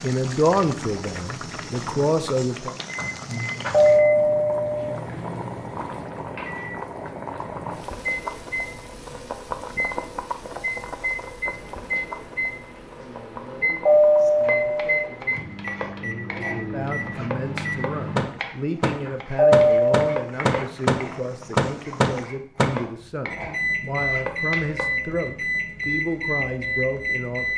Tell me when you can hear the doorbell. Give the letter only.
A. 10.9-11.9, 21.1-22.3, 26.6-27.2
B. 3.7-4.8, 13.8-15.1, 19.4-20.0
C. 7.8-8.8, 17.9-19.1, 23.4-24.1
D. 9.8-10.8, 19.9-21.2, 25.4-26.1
B.